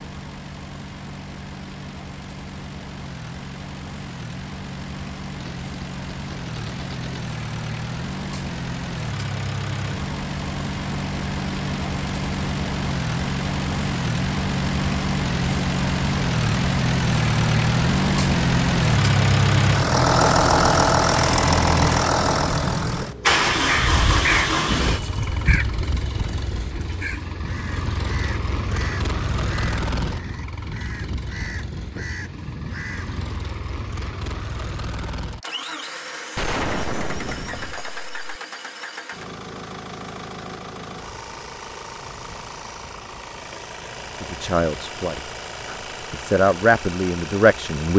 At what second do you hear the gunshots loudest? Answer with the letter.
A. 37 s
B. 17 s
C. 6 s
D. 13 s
A.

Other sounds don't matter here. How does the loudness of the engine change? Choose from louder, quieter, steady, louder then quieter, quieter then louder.
louder then quieter.